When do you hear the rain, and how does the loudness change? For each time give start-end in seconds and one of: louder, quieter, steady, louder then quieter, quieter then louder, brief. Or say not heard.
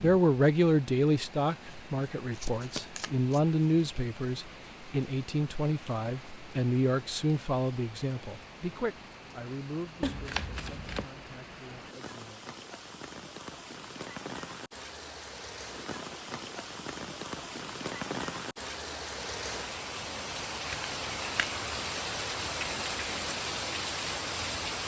0.0-24.8 louder.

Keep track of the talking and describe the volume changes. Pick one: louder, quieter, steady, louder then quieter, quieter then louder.
quieter.